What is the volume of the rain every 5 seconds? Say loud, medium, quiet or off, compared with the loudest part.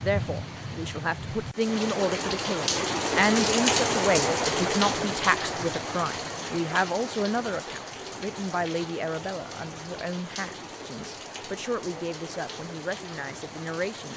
loud, medium, quiet.